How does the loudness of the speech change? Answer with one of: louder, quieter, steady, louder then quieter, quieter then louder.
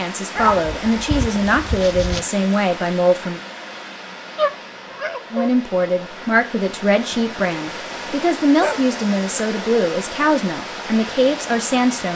steady.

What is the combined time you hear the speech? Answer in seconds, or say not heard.
10 s.